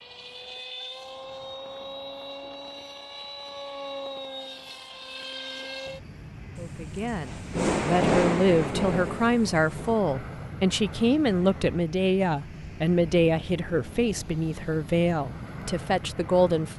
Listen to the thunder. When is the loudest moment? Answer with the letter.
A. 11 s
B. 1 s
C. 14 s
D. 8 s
D.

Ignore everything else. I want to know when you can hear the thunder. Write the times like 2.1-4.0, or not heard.
6.5-9.9.